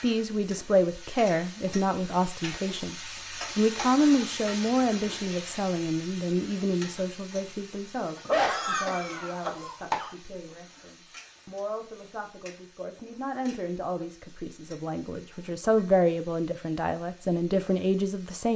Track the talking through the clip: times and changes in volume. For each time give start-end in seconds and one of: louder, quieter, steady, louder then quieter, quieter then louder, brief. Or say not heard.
0.0-3.0 brief
3.5-18.5 quieter then louder.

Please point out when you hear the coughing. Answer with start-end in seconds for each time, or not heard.
8.2-10.1.